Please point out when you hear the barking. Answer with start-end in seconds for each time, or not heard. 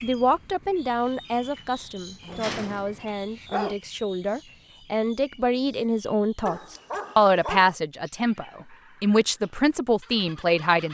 2.2-3.8, 6.5-7.8.